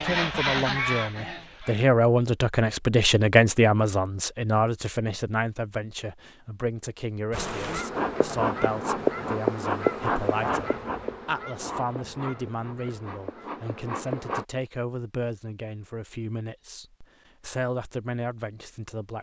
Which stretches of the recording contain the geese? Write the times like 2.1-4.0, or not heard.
0.0-1.9, 7.6-13.5.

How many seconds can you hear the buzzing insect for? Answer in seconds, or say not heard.
7 s.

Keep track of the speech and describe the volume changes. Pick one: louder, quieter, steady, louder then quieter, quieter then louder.
quieter.